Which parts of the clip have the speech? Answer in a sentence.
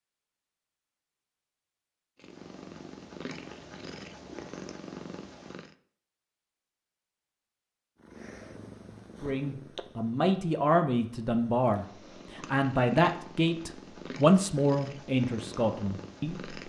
The speech can be heard from 9.2 to 16.6 s.